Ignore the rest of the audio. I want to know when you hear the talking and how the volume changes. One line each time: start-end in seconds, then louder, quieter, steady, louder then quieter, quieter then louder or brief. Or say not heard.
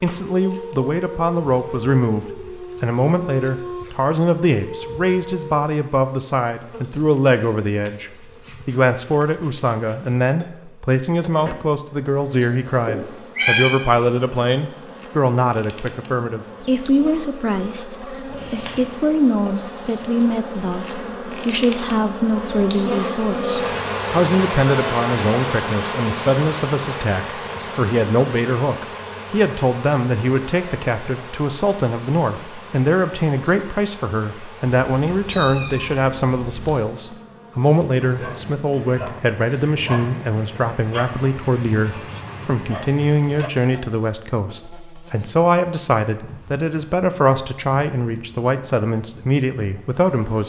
0.0-50.4 steady.